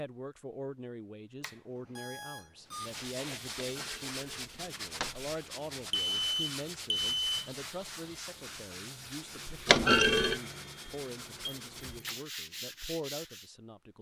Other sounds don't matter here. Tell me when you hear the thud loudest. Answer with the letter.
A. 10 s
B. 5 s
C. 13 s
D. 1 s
A.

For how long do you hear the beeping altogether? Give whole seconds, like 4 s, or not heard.
4 s.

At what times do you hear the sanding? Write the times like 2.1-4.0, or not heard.
2.6-13.5.